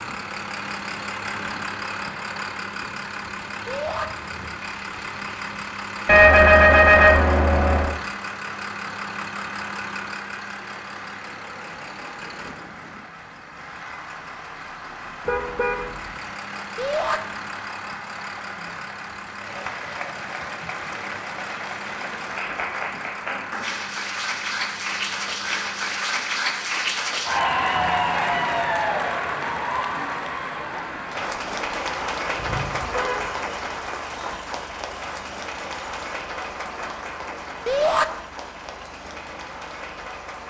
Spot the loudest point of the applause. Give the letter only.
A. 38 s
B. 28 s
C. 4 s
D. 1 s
B.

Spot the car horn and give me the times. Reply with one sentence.
The car horn can be heard from 6.0 to 8.0 s, from 15.2 to 16.3 s and from 32.4 to 33.5 s.